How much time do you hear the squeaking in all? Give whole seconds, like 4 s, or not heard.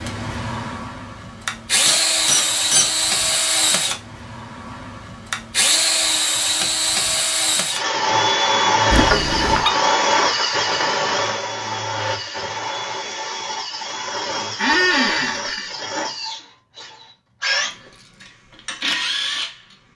3 s.